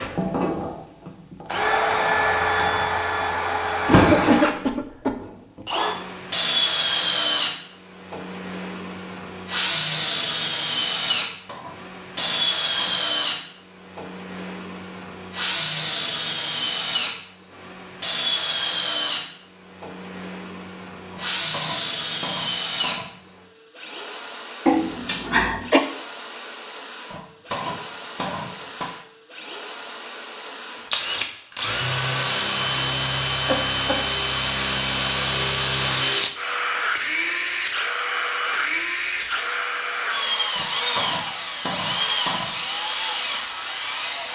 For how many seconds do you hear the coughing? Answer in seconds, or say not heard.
3 s.